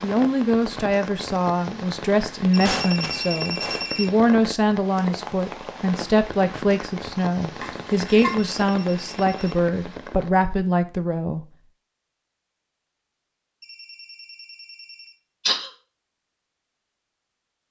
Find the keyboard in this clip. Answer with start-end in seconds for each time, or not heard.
not heard.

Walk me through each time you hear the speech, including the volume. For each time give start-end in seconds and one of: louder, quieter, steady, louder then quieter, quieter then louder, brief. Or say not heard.
0.0-11.4 steady.